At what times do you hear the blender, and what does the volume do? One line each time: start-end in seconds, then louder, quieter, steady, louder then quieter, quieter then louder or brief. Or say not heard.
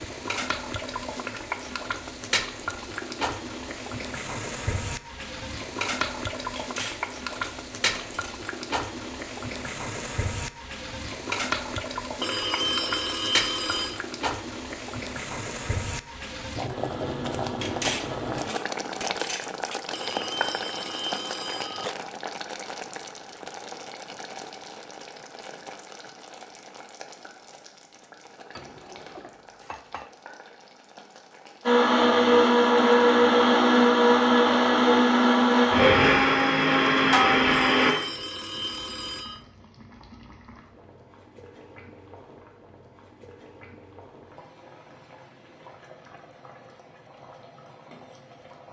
16.6-18.6 brief
31.6-38.0 steady.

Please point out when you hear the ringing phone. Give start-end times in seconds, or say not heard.
12.2-14.0, 19.9-21.9, 37.7-39.5.